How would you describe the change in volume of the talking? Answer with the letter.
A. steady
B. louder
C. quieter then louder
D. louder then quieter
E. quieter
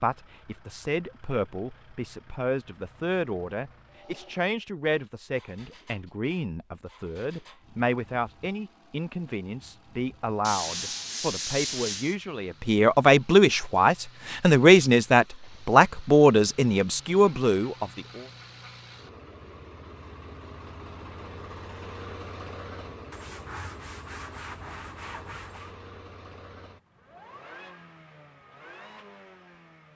B.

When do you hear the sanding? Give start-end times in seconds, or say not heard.
10.4-12.2, 23.1-25.8.